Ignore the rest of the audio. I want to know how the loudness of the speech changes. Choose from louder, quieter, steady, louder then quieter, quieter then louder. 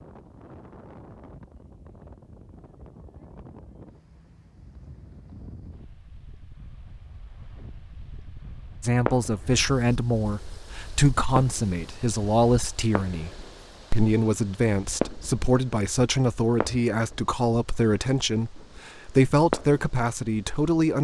steady.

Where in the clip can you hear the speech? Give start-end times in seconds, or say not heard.
8.8-13.3, 13.9-20.9.